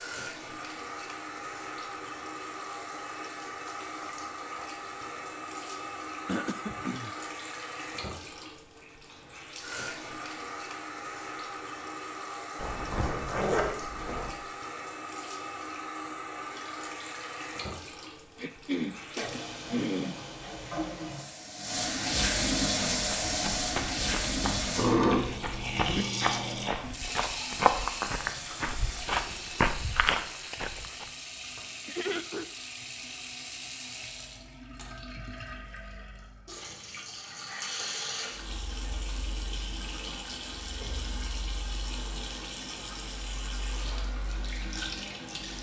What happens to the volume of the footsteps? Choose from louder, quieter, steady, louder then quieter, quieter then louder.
louder.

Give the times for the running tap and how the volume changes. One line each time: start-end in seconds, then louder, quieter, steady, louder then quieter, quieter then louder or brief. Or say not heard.
0.0-45.5 louder then quieter.